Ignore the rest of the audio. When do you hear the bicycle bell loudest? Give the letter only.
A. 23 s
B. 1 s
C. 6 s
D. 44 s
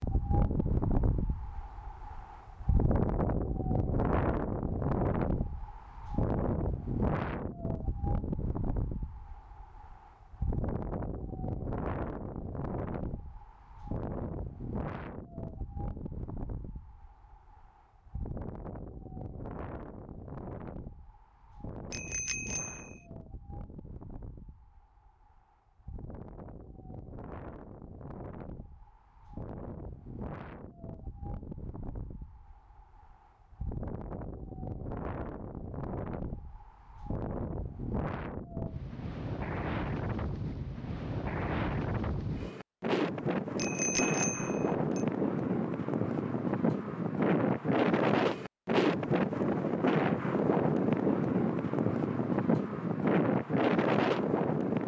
D.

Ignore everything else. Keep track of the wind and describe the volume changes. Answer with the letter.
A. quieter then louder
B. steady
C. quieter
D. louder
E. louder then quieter
A.